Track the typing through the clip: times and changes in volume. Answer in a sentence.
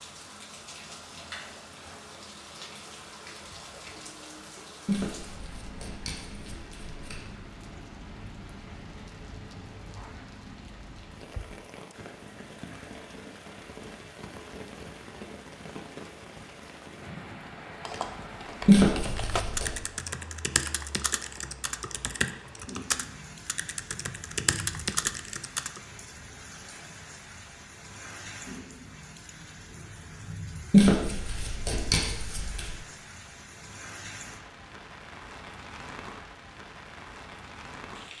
You can hear the typing from 17.9 to 25.8 s, at a steady volume.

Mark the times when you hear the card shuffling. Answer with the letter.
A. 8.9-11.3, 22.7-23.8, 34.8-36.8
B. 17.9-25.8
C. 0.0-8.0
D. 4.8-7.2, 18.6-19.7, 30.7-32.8
D.